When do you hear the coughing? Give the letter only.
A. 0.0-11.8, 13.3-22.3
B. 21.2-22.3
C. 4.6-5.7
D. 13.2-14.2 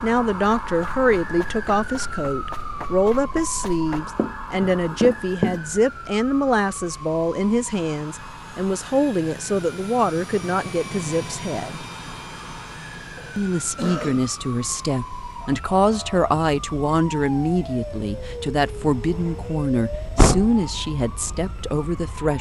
D.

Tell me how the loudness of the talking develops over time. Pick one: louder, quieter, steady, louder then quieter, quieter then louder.
steady.